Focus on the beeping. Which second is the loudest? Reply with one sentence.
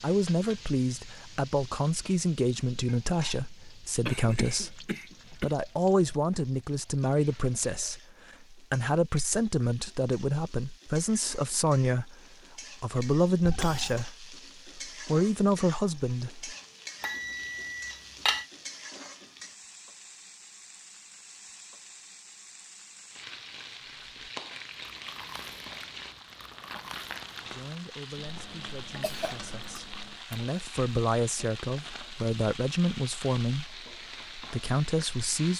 The volume of the beeping peaks at 18 seconds.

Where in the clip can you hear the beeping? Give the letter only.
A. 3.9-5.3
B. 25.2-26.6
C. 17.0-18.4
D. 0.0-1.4
C.